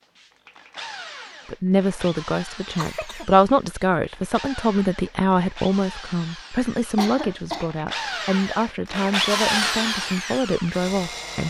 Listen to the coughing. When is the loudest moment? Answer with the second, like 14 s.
7 s.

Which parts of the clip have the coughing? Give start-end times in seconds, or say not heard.
2.8-3.2, 7.0-7.8.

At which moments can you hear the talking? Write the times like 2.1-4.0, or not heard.
1.4-11.4.